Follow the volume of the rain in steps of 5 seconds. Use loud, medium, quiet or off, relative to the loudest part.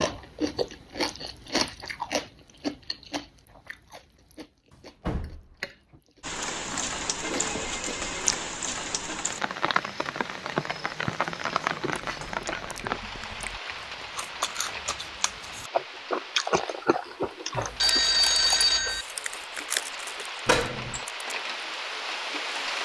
off, loud, loud, medium, loud.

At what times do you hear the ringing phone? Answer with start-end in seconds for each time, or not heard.
7.2-8.3, 17.6-19.1.